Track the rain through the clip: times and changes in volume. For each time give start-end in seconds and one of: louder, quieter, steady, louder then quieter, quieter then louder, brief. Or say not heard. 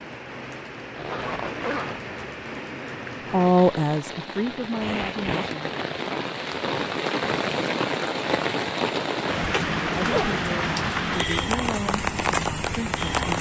0.0-13.3 louder.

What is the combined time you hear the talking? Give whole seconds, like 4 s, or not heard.
6 s.